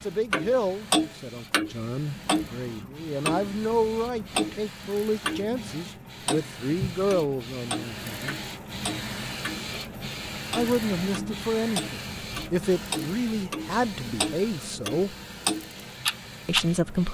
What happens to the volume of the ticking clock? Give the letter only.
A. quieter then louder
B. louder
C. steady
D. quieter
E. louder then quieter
A.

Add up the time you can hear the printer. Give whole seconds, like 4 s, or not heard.
17 s.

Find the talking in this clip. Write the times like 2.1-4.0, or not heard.
0.0-8.4, 10.6-15.2, 16.4-17.0.